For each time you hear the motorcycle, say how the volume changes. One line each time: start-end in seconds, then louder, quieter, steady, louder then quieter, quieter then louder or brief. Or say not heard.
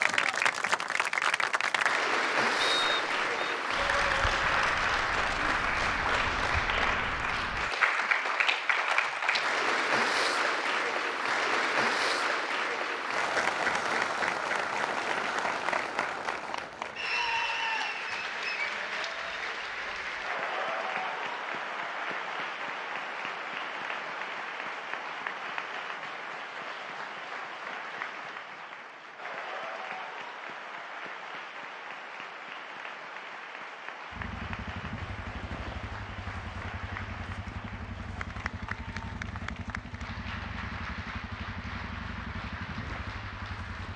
34.1-43.9 steady.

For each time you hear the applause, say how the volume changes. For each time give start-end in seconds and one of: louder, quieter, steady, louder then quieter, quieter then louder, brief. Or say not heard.
0.0-43.9 quieter.